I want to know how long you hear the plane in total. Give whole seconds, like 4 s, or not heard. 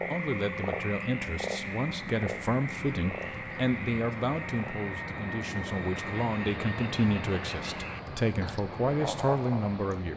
10 s.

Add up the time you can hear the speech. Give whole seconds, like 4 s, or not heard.
10 s.